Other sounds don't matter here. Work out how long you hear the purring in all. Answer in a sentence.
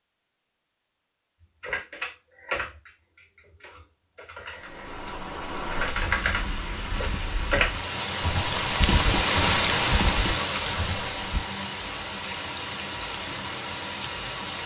The purring can't be heard in this clip.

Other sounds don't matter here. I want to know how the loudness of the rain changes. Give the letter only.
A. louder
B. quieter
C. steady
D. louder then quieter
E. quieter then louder
D.